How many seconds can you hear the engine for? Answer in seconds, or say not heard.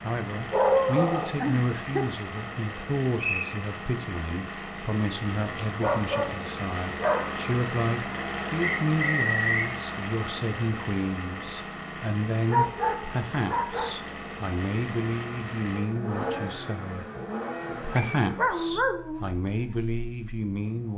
21 s.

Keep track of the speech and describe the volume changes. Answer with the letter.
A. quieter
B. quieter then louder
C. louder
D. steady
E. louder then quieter
D.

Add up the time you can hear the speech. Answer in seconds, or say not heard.
20 s.